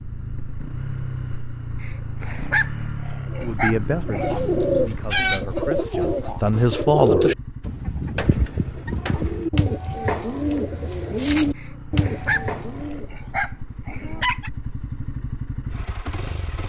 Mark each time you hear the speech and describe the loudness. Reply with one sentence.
The speech can be heard from 3.4 to 7.7 s, getting quieter then louder.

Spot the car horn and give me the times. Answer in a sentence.
You can't hear the car horn here.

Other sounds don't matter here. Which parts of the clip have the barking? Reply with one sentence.
You can hear the barking from 1.8 to 4.3 s and from 11.6 to 14.5 s.